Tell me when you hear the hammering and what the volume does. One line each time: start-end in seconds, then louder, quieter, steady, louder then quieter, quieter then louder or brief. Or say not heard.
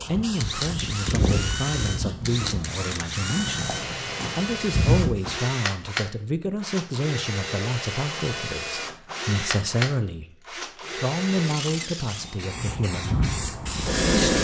not heard.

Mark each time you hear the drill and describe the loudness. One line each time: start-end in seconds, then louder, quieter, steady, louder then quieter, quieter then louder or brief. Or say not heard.
0.2-12.4 steady.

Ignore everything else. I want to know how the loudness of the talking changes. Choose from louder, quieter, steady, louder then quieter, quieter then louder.
steady.